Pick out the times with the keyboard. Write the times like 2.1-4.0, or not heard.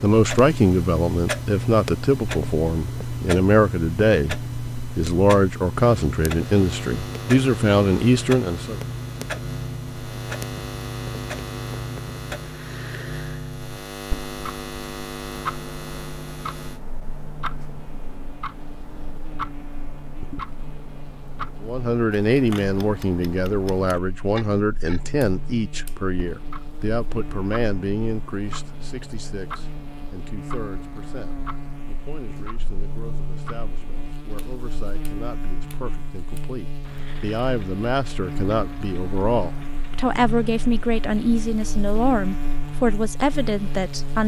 not heard.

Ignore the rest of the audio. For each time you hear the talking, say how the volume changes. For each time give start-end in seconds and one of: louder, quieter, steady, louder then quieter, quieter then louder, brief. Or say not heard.
0.0-8.8 steady
21.6-44.2 quieter then louder.